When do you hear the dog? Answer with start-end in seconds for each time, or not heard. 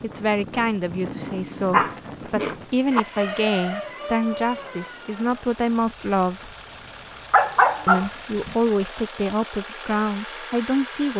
1.0-3.0, 6.8-8.6.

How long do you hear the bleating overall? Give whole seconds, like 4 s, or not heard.
not heard.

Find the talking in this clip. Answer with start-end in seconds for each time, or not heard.
0.0-6.5, 7.8-11.1.